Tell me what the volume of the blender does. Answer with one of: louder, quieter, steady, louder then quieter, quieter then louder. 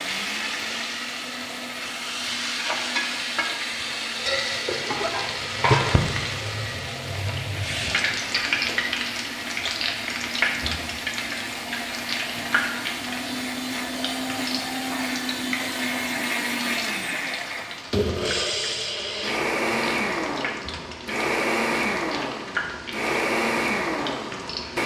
louder.